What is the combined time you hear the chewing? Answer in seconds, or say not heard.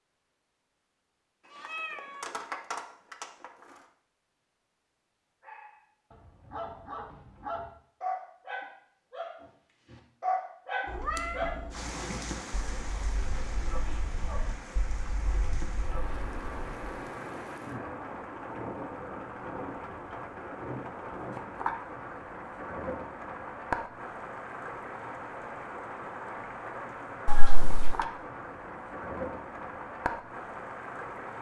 not heard.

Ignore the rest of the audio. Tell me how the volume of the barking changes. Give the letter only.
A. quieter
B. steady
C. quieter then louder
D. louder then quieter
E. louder
D.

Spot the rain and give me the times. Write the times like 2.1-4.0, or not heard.
11.7-31.3.